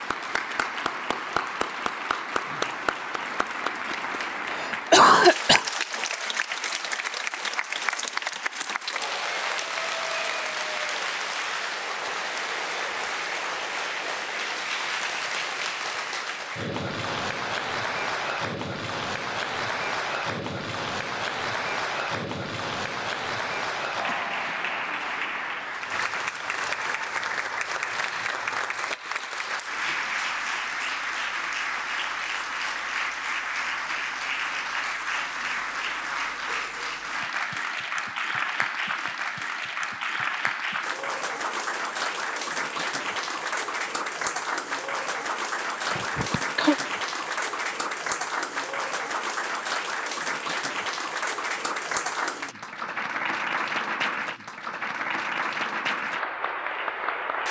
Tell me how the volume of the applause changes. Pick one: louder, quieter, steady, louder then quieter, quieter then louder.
steady.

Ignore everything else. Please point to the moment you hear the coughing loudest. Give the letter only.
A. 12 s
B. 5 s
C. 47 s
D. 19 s
B.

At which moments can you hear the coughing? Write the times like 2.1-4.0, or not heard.
4.5-5.7, 45.9-46.8.